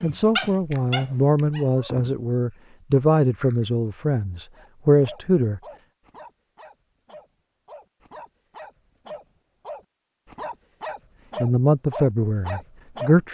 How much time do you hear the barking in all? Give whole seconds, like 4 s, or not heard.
11 s.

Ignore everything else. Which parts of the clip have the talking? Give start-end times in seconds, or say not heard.
0.0-5.6, 11.4-13.2.